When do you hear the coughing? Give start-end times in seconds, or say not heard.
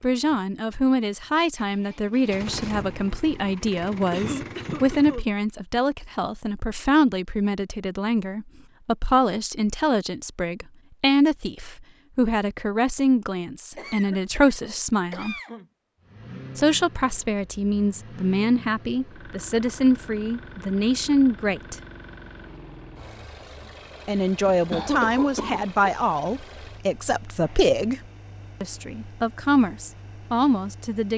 4.1-5.2, 13.8-15.7, 24.5-25.7.